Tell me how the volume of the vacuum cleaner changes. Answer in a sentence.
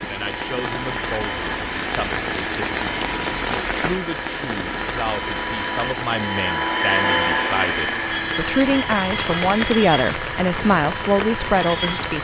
The volume of the vacuum cleaner goes up, then down.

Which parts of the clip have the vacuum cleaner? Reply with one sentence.
The vacuum cleaner can be heard from 0.0 to 12.1 s.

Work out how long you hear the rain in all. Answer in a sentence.
The rain can be heard for 12 seconds in total.